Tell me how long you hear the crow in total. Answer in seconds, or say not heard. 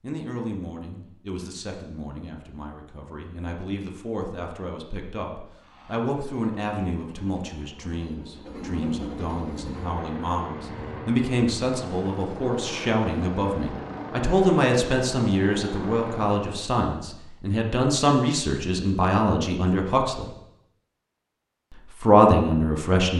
not heard.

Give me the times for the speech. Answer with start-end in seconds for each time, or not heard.
0.0-20.3, 22.0-23.1.